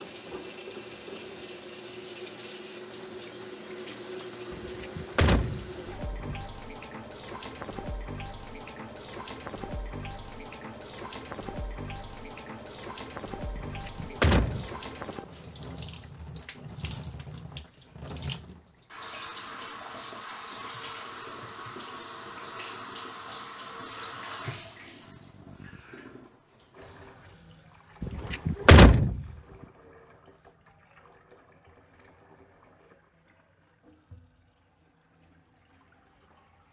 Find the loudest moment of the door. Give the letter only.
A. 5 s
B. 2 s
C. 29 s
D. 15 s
C.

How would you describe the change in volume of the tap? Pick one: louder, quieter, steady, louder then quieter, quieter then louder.
quieter.